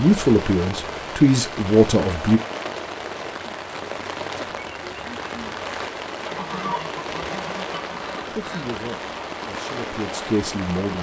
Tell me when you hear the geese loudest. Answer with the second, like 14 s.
7 s.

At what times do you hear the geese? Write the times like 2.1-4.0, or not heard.
6.2-8.8.